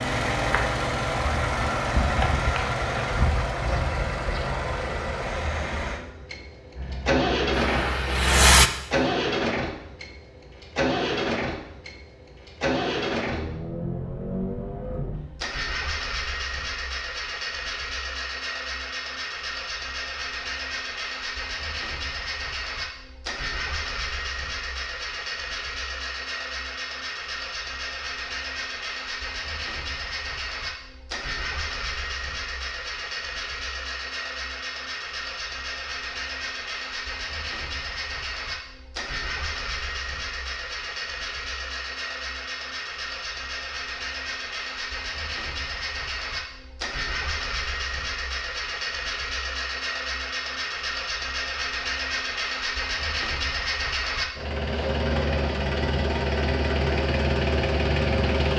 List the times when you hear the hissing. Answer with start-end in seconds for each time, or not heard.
6.8-8.7.